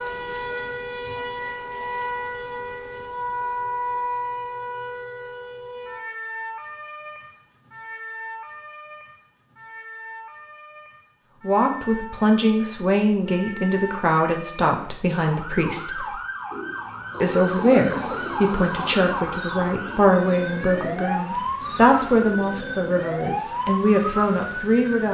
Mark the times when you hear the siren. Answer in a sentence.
The siren can be heard from 0.0 to 25.1 s.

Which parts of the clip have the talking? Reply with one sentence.
You can hear the talking from 11.4 to 16.1 s and from 17.2 to 25.1 s.